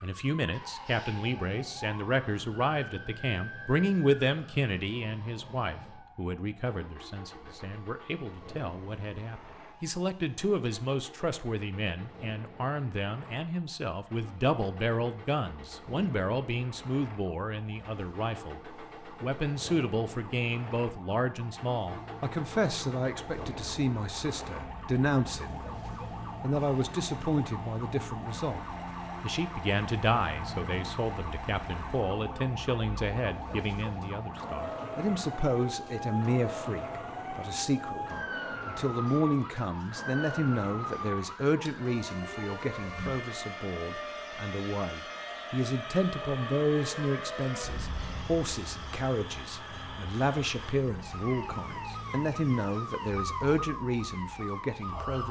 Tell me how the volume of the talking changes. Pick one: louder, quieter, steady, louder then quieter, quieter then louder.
steady.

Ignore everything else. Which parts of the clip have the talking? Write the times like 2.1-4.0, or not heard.
0.0-25.6, 26.4-55.2.